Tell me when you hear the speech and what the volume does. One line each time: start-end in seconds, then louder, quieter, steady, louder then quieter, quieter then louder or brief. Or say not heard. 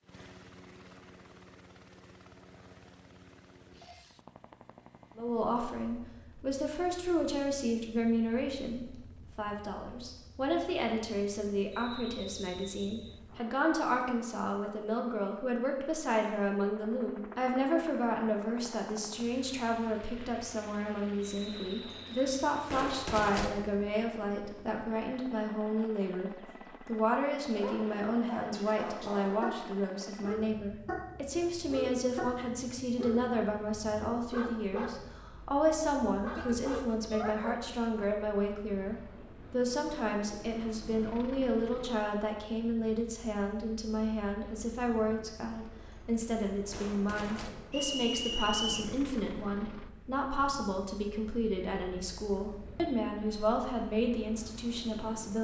5.2-55.3 steady.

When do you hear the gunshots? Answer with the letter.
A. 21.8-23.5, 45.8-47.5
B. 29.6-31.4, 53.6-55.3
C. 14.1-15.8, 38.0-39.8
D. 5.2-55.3
A.